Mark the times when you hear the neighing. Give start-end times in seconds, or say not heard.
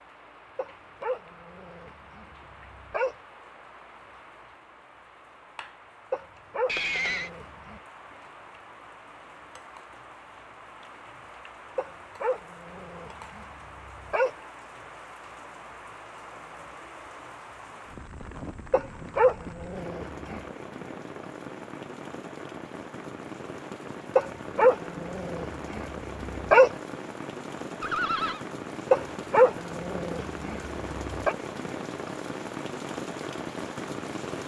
6.7-7.3, 27.8-28.4.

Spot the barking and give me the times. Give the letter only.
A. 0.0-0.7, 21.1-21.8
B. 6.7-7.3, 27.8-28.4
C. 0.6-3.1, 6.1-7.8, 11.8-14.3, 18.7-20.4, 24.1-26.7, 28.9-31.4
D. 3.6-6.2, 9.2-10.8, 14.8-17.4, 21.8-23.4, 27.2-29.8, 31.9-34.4
C.